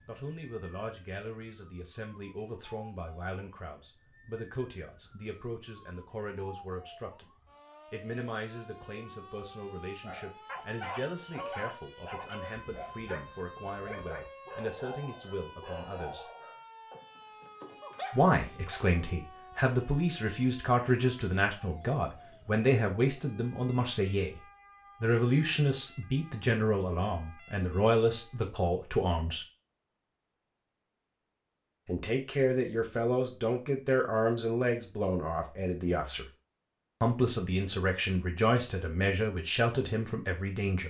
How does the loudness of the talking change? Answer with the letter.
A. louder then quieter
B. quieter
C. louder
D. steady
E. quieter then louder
C.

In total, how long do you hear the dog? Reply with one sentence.
The dog can be heard for 9 seconds in total.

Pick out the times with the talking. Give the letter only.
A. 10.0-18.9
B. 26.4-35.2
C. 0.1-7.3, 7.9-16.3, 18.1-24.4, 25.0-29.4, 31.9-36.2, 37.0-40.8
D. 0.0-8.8
C.